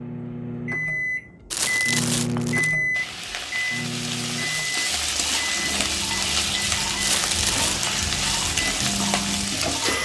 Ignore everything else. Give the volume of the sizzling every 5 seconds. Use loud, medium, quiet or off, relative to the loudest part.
medium, loud.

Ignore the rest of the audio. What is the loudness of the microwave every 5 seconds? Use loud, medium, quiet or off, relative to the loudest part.
loud, medium.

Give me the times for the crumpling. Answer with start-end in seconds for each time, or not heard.
1.5-2.8, 7.0-7.9.